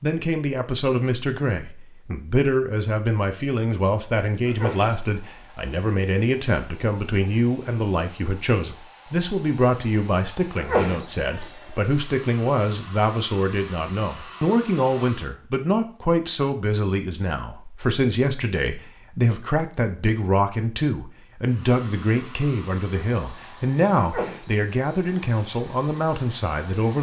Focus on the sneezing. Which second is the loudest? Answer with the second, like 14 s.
11 s.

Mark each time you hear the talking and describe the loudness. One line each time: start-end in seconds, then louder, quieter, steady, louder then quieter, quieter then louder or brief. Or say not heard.
0.0-26.9 steady.